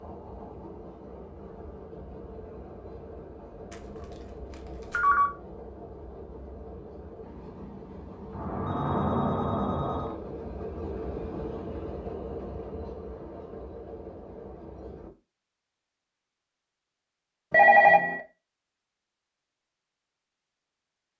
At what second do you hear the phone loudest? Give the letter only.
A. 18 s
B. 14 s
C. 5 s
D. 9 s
A.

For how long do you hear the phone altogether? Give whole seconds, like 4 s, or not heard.
4 s.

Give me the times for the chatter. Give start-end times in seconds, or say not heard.
not heard.